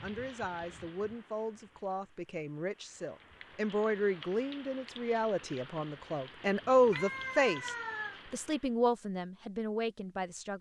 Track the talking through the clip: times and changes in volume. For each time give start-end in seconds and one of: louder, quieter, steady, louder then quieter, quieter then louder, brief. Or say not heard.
0.0-10.5 louder then quieter.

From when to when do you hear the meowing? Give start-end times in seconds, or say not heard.
6.9-8.2.